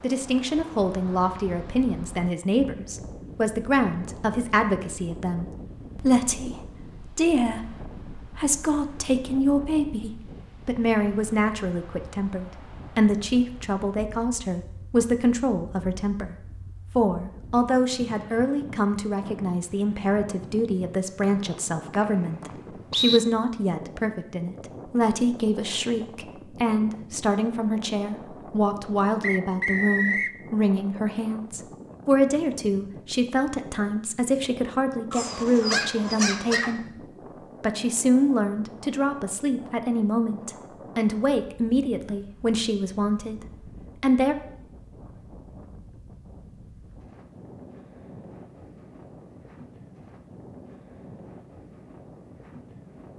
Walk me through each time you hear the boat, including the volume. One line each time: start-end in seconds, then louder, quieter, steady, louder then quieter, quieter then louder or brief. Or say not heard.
not heard.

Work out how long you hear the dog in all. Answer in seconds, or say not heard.
2 s.